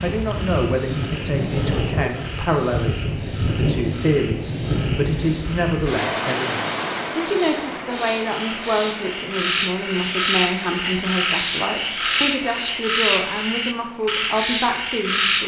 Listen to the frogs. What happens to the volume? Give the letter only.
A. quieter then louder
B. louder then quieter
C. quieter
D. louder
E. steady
D.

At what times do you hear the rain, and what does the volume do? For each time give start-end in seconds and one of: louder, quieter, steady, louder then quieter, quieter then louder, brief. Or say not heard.
0.0-15.4 quieter.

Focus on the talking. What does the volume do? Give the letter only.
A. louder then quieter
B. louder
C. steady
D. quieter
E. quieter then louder
C.